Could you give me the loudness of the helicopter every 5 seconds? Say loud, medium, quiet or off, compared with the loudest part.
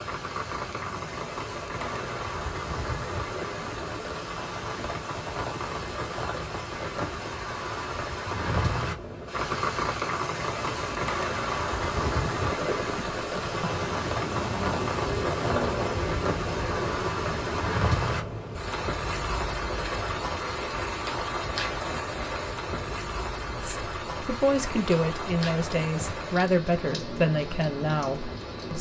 medium, medium, loud, loud, medium, medium.